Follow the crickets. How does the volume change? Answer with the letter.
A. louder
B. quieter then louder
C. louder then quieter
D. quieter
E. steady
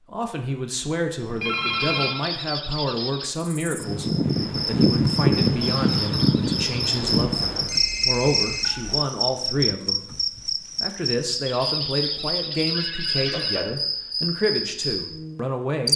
D.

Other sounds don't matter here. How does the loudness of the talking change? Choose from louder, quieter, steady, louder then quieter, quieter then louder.
steady.